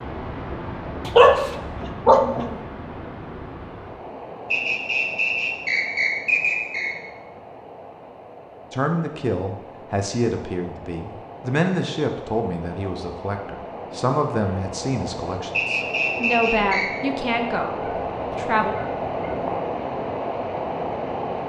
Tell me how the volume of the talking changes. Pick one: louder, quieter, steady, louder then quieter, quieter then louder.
steady.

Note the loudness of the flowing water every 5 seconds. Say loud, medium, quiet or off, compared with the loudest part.
medium, quiet, medium, loud, loud.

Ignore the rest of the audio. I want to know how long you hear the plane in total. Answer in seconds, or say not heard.
not heard.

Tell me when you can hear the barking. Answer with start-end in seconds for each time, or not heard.
1.1-2.5, 17.8-19.6.